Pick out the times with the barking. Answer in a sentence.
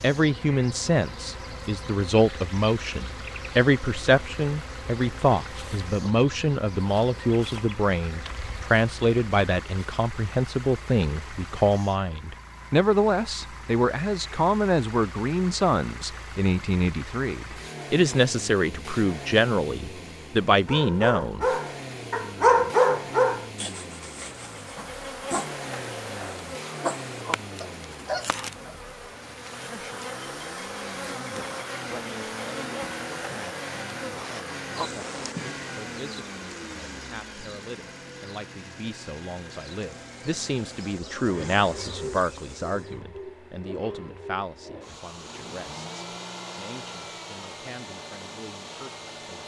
The barking can be heard from 20.6 to 28.8 s.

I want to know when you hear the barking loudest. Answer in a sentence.
The volume of the barking peaks at 23 seconds.